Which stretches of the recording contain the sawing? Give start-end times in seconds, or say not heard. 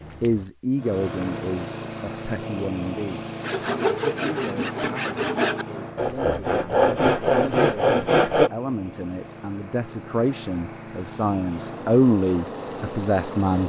3.4-8.5.